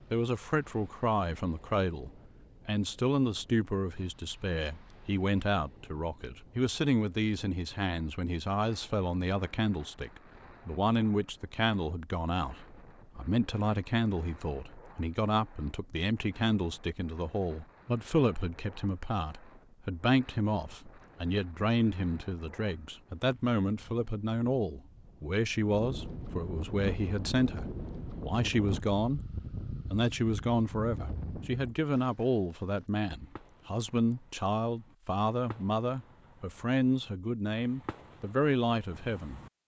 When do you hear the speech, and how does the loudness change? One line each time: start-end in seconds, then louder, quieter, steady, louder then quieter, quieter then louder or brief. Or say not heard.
0.1-29.2 steady
29.9-39.4 steady.